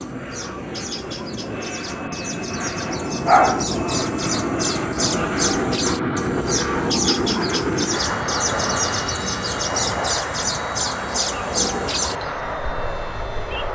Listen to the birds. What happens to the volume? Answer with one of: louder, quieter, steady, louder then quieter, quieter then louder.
louder.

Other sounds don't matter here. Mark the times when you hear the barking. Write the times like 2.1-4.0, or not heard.
3.2-3.8.